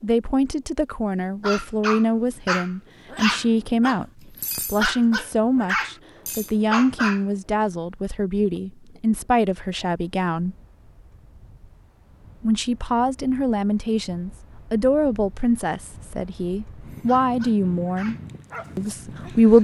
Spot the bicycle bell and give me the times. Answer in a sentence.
You can't hear the bicycle bell here.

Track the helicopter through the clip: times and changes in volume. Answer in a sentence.
You can't hear the helicopter here.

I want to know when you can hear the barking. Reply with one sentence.
The barking can be heard from 1.4 to 7.2 s and from 16.9 to 19.5 s.